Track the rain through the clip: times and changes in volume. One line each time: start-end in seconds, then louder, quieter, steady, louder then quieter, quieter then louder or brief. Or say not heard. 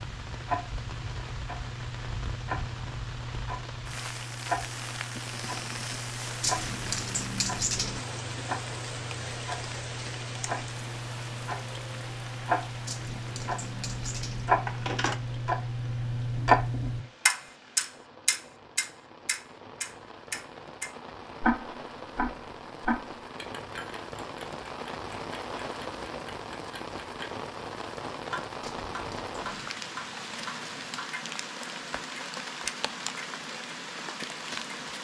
0.0-34.9 quieter then louder.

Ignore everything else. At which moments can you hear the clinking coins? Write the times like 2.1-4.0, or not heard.
6.4-8.1, 12.8-15.2, 28.6-29.7.